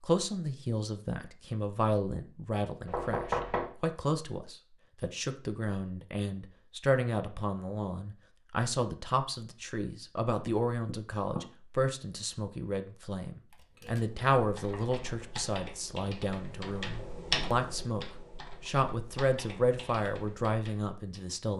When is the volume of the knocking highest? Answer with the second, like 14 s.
3 s.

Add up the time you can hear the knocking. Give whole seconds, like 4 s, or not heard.
3 s.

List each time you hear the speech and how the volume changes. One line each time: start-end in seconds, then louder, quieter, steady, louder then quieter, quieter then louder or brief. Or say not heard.
0.0-21.5 steady.